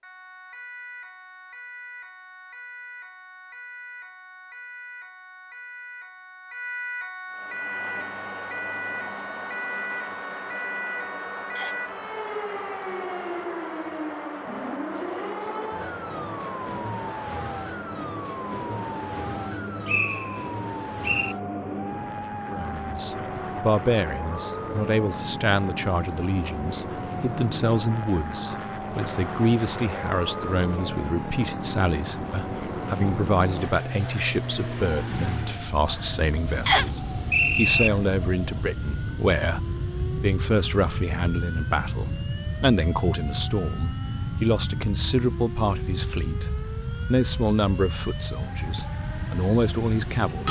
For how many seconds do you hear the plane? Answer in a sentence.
The plane can be heard for 43 seconds in total.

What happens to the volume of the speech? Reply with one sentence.
The volume of the speech stays about the same.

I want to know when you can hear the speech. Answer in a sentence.
You can hear the speech from 22.4 to 46.5 s and from 47.1 to 50.4 s.